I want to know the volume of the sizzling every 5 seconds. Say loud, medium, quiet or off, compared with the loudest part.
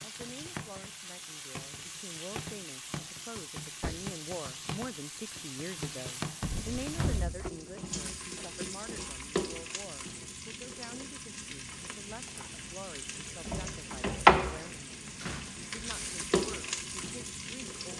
quiet, medium, loud, medium.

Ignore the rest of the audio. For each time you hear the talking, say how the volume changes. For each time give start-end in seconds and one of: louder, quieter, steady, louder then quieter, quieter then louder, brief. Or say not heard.
0.0-17.9 louder then quieter.